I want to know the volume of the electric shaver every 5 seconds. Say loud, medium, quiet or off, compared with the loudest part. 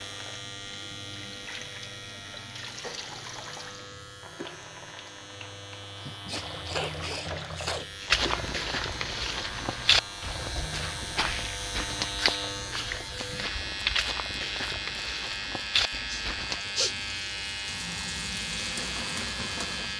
medium, medium, loud, loud.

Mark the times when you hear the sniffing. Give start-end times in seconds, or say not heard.
6.0-8.1, 15.9-17.1.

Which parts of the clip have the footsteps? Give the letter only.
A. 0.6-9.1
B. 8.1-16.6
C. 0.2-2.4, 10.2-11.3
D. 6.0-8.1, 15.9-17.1
B.